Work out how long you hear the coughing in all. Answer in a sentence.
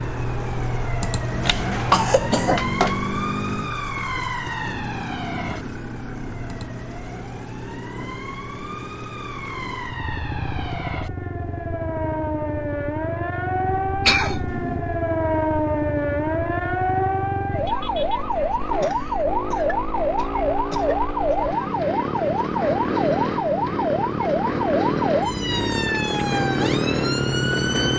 The coughing can be heard for 5 seconds in total.